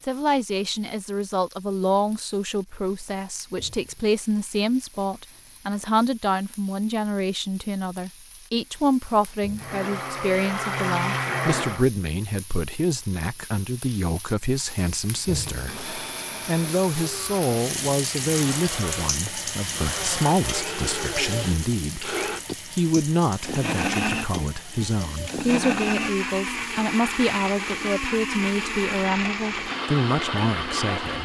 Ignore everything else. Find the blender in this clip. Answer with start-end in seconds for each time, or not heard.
9.6-11.8, 15.6-31.2.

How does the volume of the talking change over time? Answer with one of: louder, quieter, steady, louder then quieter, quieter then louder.
steady.